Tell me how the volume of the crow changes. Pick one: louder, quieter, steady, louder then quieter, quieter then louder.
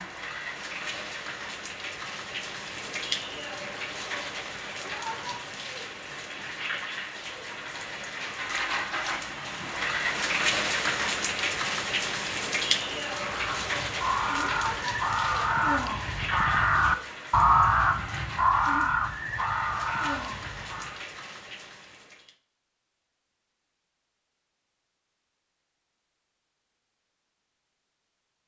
louder then quieter.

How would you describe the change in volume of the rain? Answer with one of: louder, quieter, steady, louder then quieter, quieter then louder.
louder then quieter.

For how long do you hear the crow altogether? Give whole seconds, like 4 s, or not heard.
8 s.